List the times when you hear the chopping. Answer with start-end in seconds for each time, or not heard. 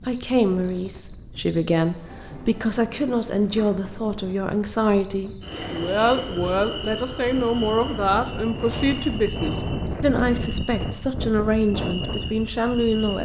not heard.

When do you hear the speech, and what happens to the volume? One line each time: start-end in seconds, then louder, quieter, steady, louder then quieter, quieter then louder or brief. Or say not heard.
0.1-13.2 steady.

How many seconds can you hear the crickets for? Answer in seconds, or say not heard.
13 s.